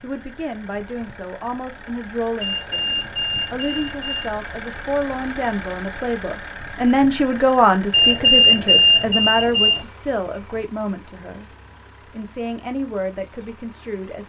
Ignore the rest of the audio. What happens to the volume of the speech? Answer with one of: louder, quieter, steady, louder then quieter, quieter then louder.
louder then quieter.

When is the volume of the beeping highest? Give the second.
8 s.